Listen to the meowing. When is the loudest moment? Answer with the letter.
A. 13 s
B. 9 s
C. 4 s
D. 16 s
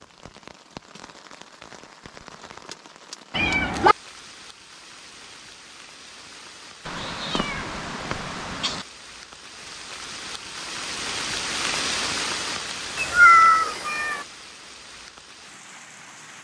A.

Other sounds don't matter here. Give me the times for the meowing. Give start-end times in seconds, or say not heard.
3.4-4.0, 6.8-8.8, 12.9-14.2.